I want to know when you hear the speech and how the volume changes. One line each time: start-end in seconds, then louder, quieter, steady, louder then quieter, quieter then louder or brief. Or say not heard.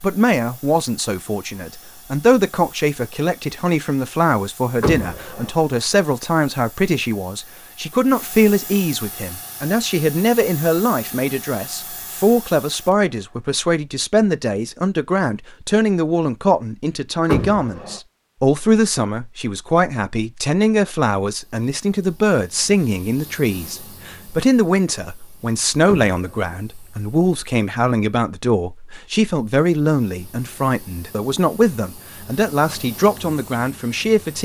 0.0-34.4 steady.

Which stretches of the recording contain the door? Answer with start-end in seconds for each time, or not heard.
4.8-5.5, 17.2-18.0, 25.9-26.6.